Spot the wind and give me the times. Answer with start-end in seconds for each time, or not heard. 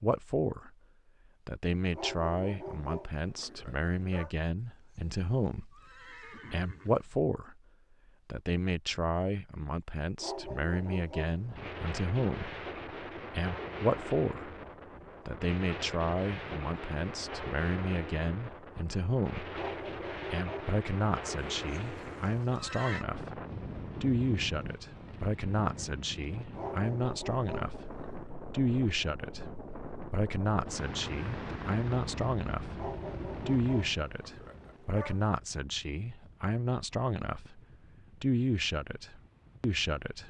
11.4-40.2.